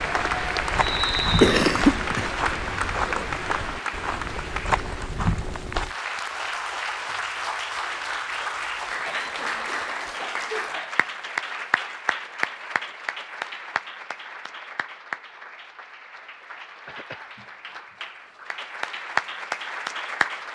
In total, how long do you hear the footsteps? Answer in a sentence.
The footsteps can be heard for 6 seconds in total.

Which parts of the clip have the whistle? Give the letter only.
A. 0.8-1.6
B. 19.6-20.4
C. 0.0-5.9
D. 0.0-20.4
A.